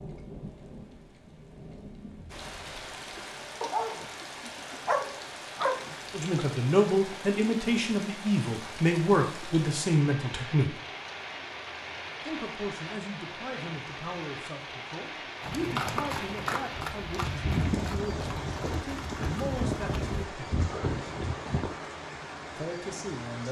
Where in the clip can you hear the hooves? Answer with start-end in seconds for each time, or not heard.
15.4-21.7.